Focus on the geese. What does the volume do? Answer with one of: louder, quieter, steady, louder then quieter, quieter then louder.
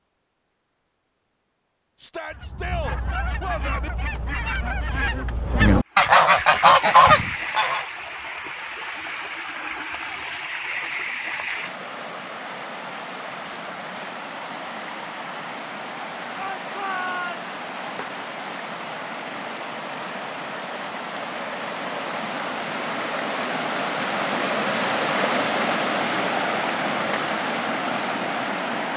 louder.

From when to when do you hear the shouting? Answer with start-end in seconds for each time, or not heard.
2.0-3.9, 16.4-17.6.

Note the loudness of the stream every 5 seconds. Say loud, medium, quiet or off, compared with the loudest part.
off, medium, medium, medium, loud, loud.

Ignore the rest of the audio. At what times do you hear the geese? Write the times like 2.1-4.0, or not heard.
2.3-7.8.